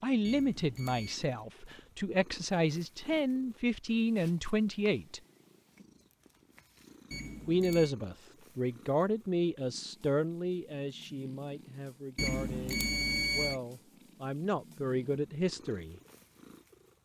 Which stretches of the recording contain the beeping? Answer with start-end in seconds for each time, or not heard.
0.2-1.2, 7.1-8.0, 12.2-13.6.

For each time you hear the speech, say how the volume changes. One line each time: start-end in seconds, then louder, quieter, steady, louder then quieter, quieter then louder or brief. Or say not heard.
0.0-5.2 quieter then louder
7.5-15.9 quieter then louder.